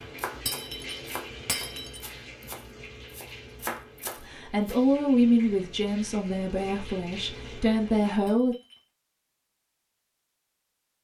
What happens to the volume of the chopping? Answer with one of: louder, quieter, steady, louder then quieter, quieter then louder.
quieter then louder.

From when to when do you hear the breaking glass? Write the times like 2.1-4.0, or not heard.
0.5-2.0, 8.2-8.8.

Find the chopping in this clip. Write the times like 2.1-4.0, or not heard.
0.0-4.8.